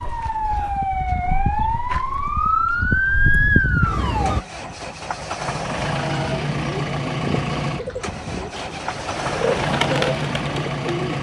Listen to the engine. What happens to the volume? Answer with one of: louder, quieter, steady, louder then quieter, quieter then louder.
louder.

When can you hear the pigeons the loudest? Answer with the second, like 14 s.
10 s.